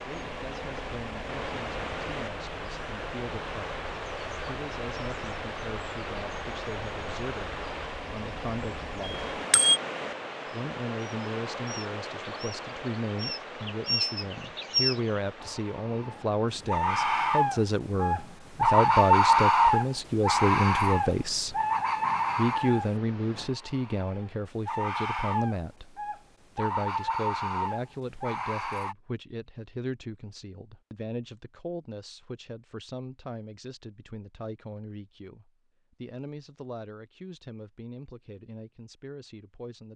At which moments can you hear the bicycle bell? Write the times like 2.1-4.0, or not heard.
9.0-9.8.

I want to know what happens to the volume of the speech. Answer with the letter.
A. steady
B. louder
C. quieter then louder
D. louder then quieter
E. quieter
D.